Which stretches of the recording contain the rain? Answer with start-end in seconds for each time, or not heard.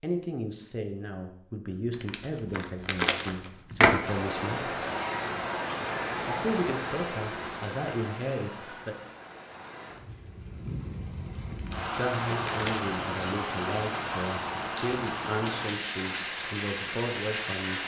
4.0-17.8.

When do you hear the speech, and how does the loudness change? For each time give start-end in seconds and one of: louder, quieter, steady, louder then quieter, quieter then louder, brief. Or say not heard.
0.0-4.8 steady
6.2-8.9 brief
11.9-17.8 steady.